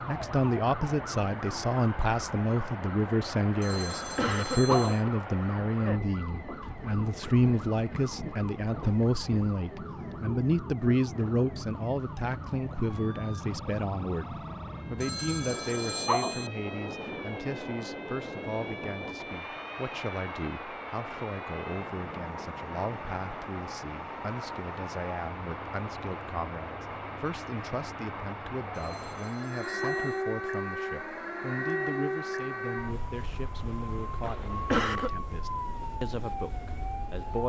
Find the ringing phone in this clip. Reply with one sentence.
You can hear the ringing phone from 3.6 to 5.0 s, from 15.0 to 16.5 s and from 28.7 to 30.2 s.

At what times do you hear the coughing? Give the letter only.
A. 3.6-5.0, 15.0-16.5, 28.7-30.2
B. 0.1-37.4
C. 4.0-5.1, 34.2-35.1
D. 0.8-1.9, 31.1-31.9
C.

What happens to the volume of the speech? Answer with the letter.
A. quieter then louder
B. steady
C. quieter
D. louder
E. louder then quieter
C.